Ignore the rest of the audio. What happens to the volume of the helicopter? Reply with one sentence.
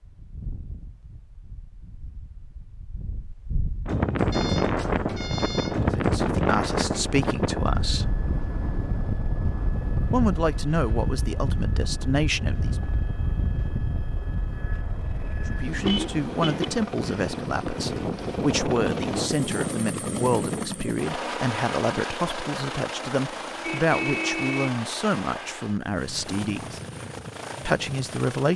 The volume of the helicopter goes up, then down.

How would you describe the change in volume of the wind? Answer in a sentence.
The loudness of the wind goes up, then down.